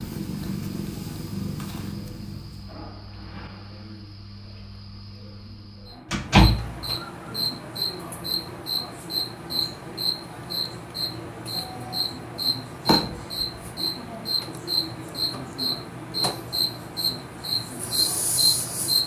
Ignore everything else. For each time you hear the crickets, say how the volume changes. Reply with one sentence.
You can hear the crickets from 0.0 to 19.0 s, getting louder.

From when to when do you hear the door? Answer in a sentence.
The door can be heard from 6.1 to 7.0 s and from 12.8 to 13.4 s.